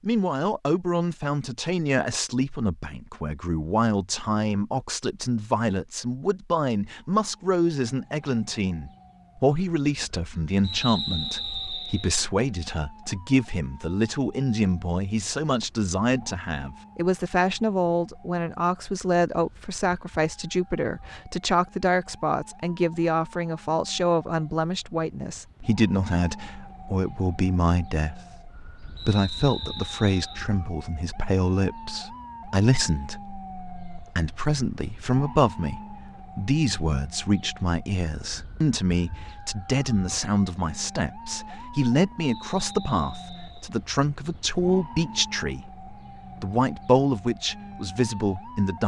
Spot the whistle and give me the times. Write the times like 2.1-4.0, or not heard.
10.6-12.2, 28.9-30.4, 42.2-43.7.